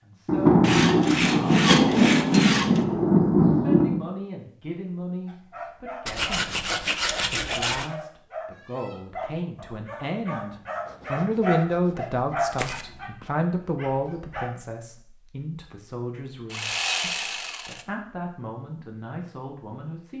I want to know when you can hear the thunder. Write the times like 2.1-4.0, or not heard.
0.2-4.0.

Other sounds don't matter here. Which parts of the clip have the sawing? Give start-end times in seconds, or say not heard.
0.6-2.8, 6.0-7.9, 10.8-12.8, 16.5-17.9.